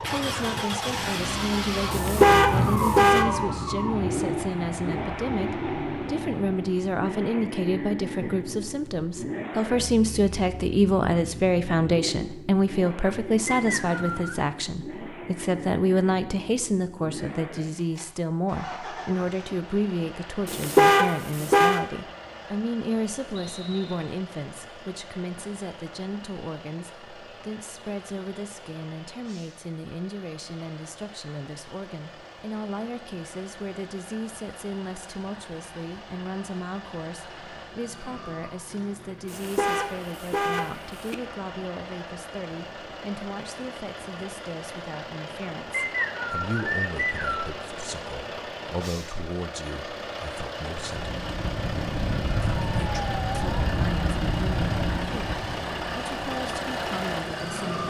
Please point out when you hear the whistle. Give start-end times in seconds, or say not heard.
13.4-14.4, 23.4-24.2, 45.7-47.5.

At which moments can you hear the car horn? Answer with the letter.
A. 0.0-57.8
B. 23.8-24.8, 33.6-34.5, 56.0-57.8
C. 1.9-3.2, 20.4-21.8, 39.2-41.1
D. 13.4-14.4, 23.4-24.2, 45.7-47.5
C.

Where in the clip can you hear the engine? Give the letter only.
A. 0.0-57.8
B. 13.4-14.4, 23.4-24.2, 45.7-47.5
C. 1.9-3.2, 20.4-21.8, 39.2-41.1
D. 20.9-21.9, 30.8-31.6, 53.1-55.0
A.